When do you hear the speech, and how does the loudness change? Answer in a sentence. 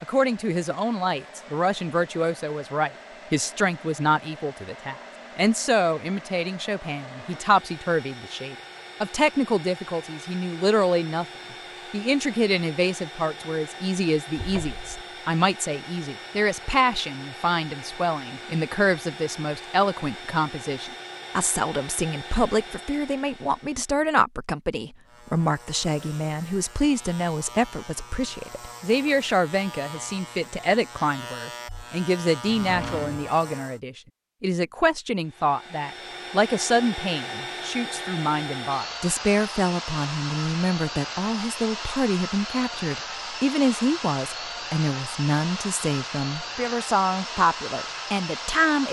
You can hear the speech from 0.0 to 11.2 s, at a steady volume; and from 11.9 to 48.8 s, at a steady volume.